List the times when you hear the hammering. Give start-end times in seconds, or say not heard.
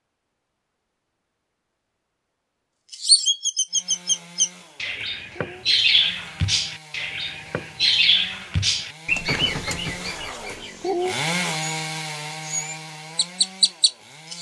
not heard.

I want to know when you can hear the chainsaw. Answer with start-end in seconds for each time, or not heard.
3.6-14.3.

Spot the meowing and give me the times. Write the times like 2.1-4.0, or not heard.
9.2-10.4.